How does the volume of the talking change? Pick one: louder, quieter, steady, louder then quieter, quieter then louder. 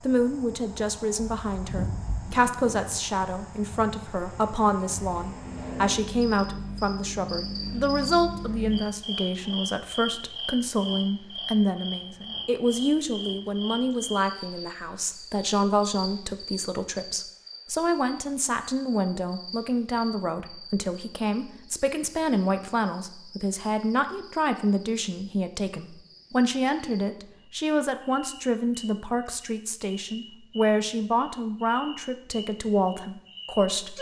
steady.